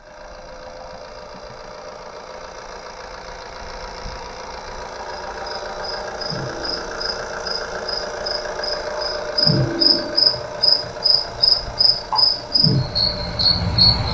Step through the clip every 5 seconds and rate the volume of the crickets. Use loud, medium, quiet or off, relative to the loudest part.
off, medium, loud.